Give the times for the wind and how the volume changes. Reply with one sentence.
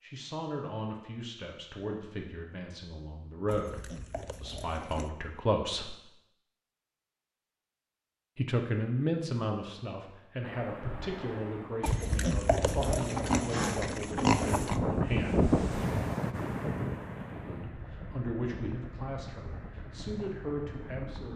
You can hear the wind from 10.4 to 21.3 s, getting louder then quieter.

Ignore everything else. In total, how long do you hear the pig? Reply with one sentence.
The pig can be heard for 5 seconds in total.